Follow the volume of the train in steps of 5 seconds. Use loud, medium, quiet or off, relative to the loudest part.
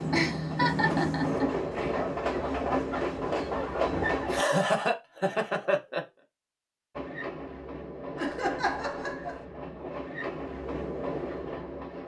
loud, medium, medium.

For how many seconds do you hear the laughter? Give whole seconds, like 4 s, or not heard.
5 s.